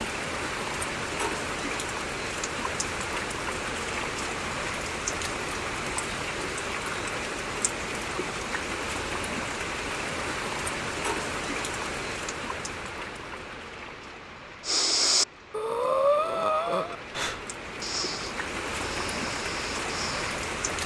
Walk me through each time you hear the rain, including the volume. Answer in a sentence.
The rain can be heard from 0.0 to 20.8 s, getting quieter then louder.